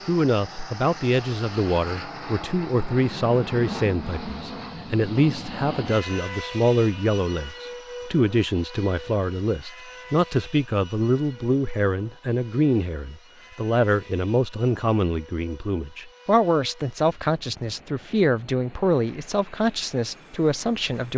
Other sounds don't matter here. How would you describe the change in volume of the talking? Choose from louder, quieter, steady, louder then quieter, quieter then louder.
steady.